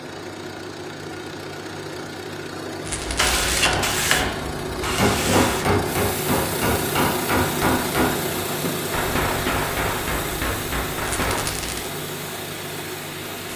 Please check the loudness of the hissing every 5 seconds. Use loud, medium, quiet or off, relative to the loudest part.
loud, medium, medium.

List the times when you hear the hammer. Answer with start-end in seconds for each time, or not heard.
3.1-11.5.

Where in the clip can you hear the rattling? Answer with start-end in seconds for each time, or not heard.
2.8-3.8, 11.1-11.9.